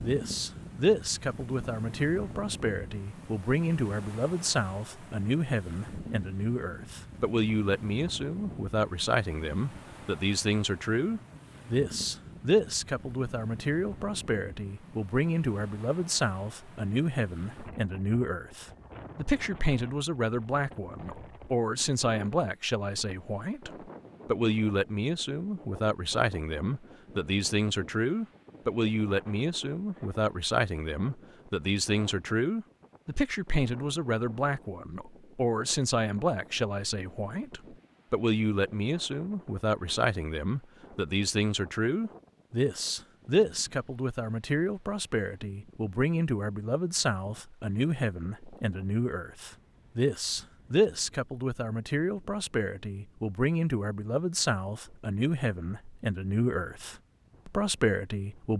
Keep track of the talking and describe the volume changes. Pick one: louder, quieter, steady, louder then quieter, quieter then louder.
steady.